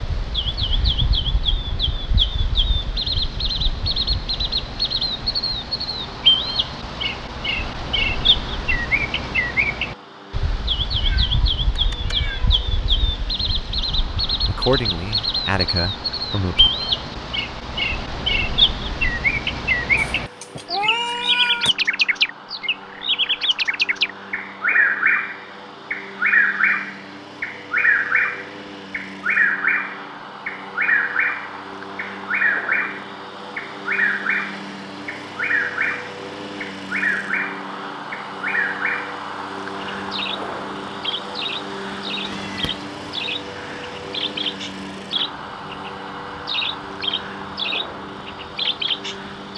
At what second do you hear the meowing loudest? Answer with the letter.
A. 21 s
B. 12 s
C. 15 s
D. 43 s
A.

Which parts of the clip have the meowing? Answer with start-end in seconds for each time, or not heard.
11.0-12.6, 19.9-21.7, 42.2-42.9.